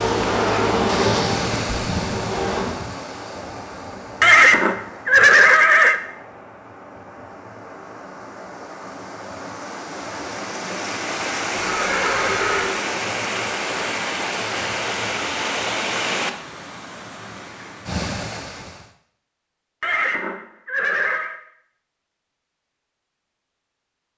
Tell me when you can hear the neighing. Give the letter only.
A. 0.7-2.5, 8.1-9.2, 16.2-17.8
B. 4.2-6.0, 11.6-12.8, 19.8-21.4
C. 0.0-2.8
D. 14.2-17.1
B.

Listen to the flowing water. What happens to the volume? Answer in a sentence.
The volume of the flowing water goes down, then up.